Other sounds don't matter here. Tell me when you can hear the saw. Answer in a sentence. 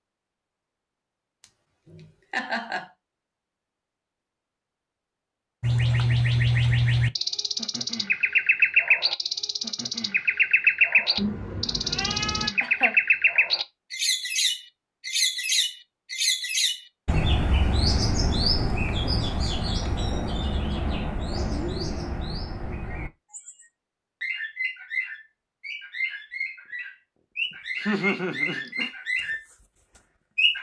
You can't hear the saw here.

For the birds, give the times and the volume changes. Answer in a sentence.
The birds can be heard from 5.6 to 30.5 s, getting quieter.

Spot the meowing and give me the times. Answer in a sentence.
The meowing can be heard from 11.2 to 12.5 s.